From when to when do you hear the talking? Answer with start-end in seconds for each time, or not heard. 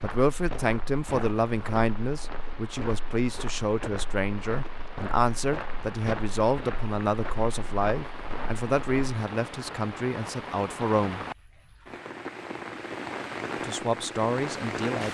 0.0-11.2, 13.6-15.0.